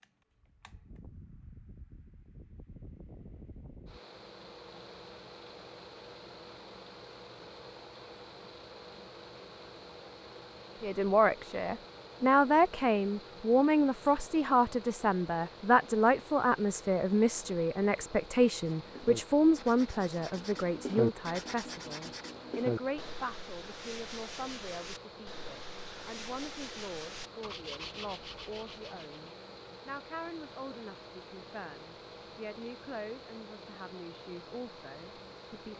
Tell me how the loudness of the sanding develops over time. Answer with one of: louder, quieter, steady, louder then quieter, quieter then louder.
quieter.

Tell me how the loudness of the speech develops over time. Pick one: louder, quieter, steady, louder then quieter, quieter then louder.
quieter.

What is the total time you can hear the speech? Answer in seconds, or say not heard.
25 s.